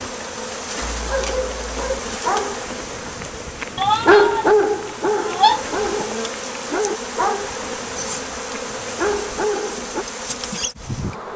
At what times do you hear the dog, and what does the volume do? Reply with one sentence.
The dog can be heard from 0.9 to 10.1 s, getting louder then quieter.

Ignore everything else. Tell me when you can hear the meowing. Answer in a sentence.
The meowing can be heard from 3.8 to 6.0 s.